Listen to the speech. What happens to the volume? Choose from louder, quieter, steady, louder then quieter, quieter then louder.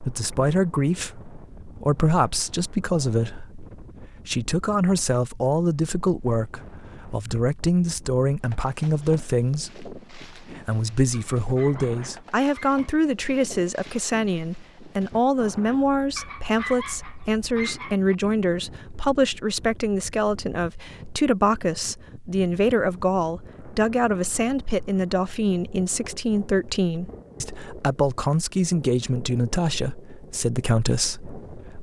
steady.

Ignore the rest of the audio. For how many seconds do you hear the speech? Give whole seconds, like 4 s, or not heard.
32 s.